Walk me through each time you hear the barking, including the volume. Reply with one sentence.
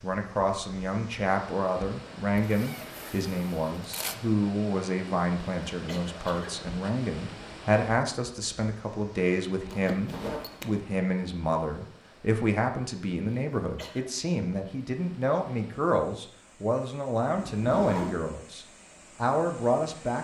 The barking can't be heard in this clip.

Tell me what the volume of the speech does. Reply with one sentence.
The volume of the speech stays about the same.